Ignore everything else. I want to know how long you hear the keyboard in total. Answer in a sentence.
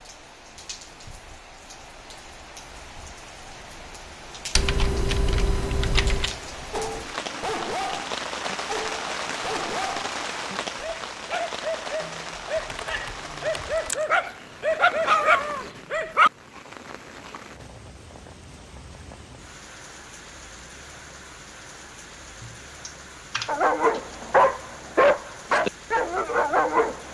The keyboard can be heard for 6 seconds in total.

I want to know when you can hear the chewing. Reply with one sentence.
You can't hear the chewing here.